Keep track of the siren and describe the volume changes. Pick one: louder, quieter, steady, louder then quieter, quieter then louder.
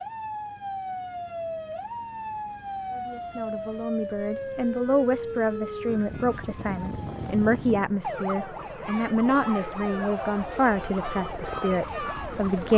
steady.